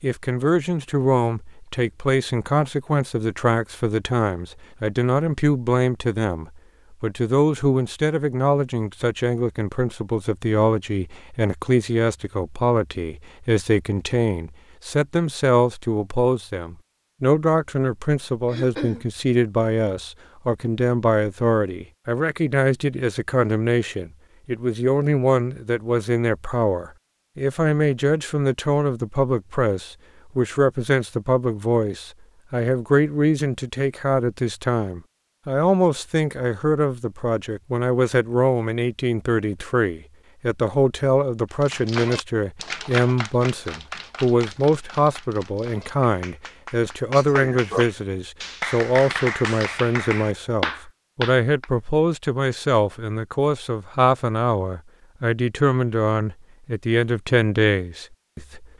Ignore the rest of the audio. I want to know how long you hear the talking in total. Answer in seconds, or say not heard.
59 s.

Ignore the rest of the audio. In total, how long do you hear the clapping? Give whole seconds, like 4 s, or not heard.
10 s.